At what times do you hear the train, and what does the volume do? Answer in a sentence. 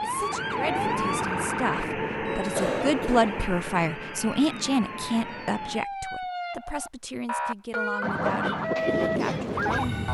The train can be heard from 0.0 to 5.9 s, getting quieter; and briefly from 8.0 to 10.0 s.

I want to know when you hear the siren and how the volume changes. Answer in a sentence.
You can hear the siren from 0.0 to 10.0 s, getting quieter then louder.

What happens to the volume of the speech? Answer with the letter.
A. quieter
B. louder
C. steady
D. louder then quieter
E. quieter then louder
D.